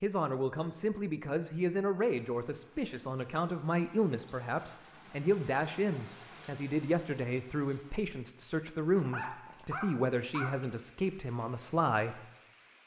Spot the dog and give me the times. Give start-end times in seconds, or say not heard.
8.9-10.6.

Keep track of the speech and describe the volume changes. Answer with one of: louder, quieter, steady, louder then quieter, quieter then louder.
steady.